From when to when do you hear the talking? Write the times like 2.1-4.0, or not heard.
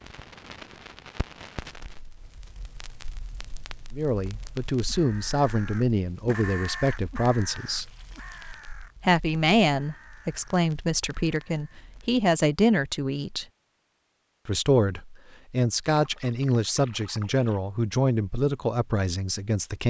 3.9-8.0, 9.0-13.4, 14.4-19.8.